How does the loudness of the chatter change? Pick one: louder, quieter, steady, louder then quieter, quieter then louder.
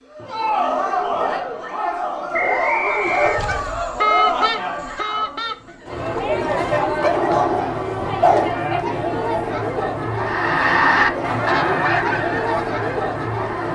steady.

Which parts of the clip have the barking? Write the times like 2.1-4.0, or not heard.
1.1-3.5, 7.0-8.5.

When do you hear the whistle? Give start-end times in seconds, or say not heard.
2.3-3.4.